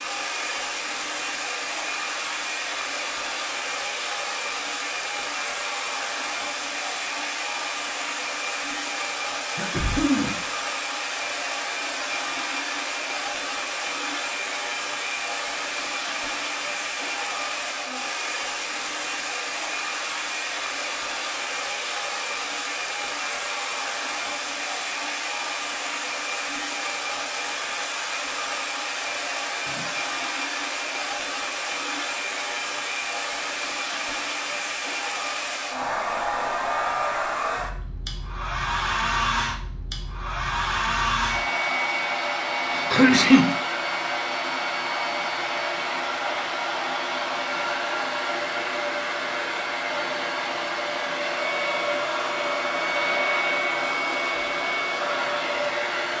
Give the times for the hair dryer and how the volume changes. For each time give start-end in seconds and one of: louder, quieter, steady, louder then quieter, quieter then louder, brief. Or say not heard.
0.0-56.1 steady.